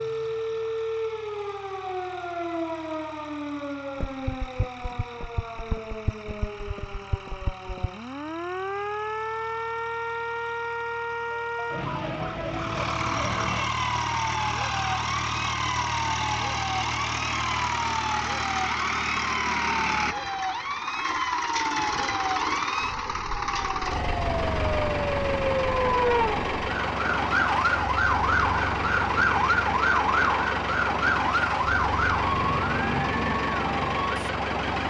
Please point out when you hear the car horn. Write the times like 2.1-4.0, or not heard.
not heard.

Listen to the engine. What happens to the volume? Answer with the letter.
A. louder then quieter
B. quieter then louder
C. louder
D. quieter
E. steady
C.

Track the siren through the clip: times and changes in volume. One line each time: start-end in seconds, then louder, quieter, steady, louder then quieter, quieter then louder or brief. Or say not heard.
0.0-34.8 louder.